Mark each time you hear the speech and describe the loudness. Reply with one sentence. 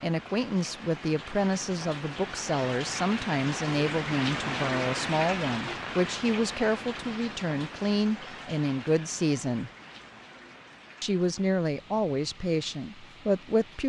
You can hear the speech from 0.0 to 9.7 s, at a steady volume; and briefly from 11.0 to 13.8 s.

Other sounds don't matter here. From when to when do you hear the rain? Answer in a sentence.
You can hear the rain from 0.0 to 13.8 s.